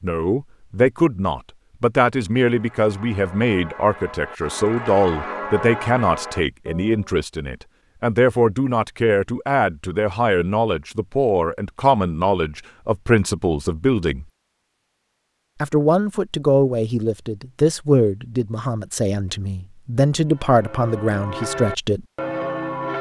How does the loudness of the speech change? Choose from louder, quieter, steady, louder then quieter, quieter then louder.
steady.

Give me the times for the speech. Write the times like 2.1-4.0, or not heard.
0.0-14.2, 15.6-22.1.